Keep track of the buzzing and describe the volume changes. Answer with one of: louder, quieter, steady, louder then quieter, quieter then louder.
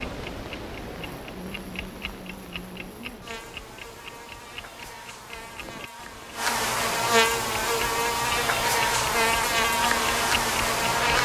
louder.